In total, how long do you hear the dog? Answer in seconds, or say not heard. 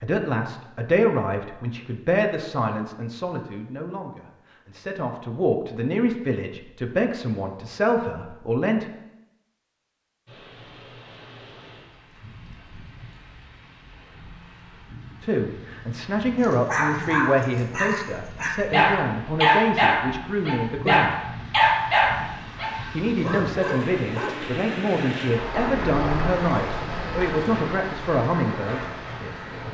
8 s.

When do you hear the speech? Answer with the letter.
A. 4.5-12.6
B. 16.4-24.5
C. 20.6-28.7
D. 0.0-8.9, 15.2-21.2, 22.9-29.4
D.